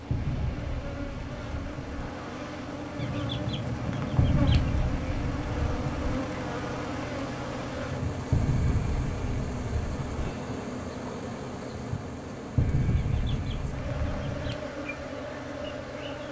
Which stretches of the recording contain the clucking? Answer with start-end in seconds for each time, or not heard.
3.0-4.8, 13.1-14.7.